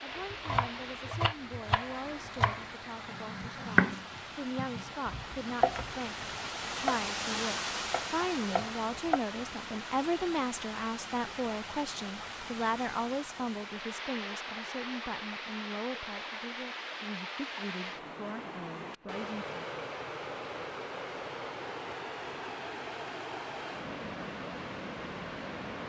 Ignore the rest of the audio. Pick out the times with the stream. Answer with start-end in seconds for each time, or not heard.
0.0-25.8.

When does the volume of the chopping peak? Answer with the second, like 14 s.
4 s.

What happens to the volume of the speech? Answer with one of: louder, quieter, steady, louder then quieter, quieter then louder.
louder then quieter.